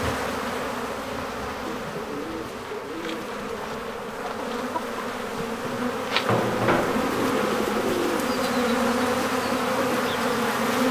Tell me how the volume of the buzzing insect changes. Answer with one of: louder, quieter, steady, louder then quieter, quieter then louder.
louder.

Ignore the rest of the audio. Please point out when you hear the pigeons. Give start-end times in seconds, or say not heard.
1.6-3.5, 6.8-8.6.